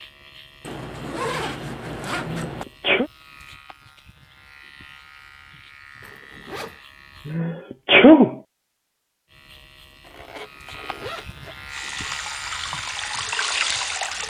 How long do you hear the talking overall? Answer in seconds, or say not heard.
not heard.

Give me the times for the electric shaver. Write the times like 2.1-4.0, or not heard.
0.0-7.4, 9.2-14.2.